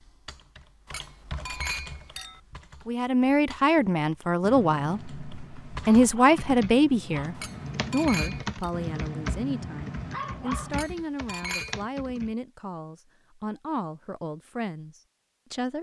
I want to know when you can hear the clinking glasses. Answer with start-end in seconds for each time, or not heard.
0.8-2.4, 7.3-8.7, 10.7-11.8.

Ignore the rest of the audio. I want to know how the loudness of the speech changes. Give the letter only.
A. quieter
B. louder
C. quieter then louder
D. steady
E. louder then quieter
A.